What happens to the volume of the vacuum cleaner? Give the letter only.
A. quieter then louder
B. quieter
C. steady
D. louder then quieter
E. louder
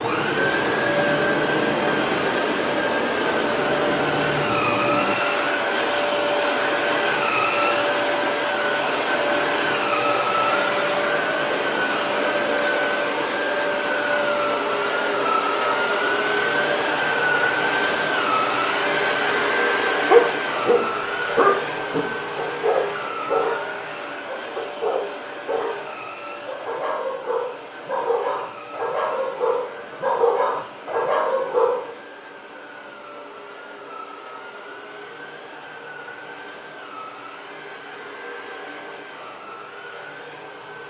B.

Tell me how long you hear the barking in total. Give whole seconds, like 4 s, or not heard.
12 s.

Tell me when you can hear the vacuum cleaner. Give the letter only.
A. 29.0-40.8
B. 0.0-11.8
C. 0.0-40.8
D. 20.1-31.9
C.